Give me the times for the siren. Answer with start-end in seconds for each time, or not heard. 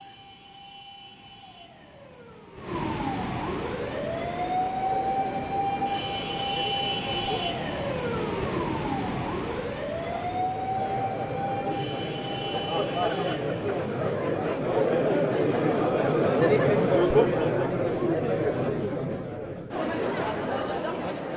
0.0-14.2.